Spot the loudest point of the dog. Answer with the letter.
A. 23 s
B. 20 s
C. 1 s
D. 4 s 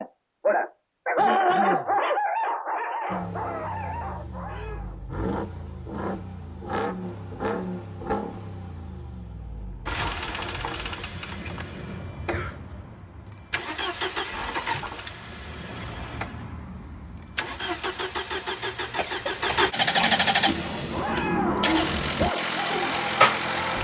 C.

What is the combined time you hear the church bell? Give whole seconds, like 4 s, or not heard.
not heard.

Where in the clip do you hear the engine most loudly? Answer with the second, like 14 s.
20 s.